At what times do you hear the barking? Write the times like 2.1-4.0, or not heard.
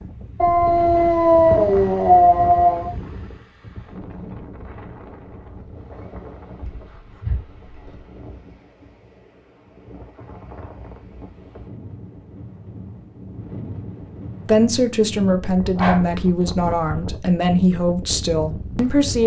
0.3-2.9, 6.6-8.0, 15.4-17.0.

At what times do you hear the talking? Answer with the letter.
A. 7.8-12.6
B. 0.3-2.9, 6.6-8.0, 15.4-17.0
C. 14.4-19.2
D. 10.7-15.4
C.